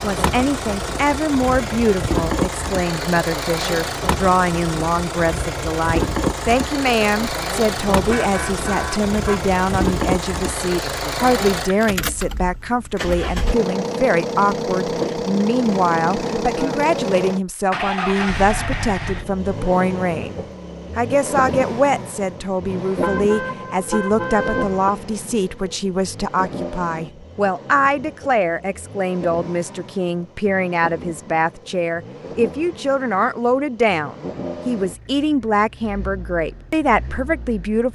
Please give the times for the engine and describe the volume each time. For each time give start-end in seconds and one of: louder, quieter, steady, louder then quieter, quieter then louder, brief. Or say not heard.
0.0-37.8 quieter.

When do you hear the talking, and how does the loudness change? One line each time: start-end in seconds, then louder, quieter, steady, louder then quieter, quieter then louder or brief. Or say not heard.
0.0-37.8 steady.